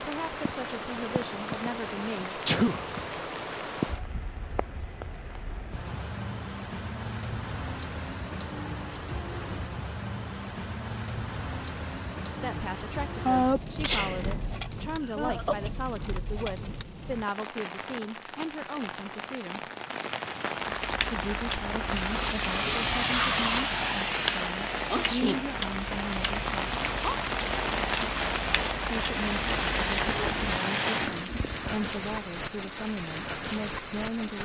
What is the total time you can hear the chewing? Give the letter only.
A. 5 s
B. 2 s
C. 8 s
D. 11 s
D.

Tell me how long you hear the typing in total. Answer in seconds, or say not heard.
not heard.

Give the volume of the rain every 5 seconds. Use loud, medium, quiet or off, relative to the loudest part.
medium, medium, medium, medium, loud, loud, loud.